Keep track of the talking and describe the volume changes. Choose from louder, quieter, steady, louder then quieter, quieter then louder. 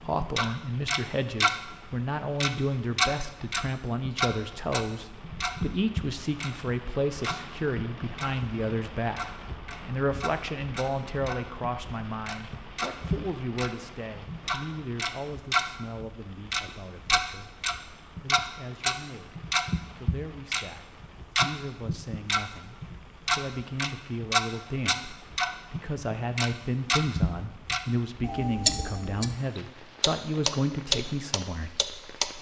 quieter then louder.